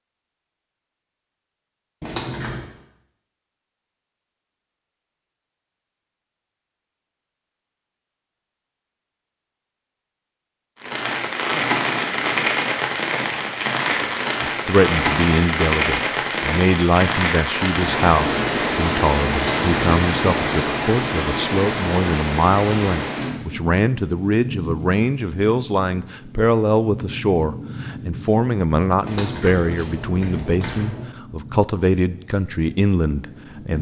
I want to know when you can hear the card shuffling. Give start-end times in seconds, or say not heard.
2.0-2.6, 19.3-19.8, 29.0-31.1.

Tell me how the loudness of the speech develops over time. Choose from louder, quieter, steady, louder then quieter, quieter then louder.
steady.